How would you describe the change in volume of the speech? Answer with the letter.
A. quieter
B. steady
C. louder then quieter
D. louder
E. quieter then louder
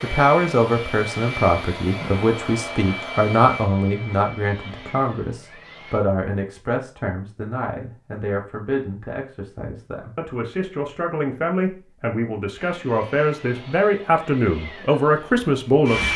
E.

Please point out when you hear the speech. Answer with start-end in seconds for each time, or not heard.
0.0-16.1.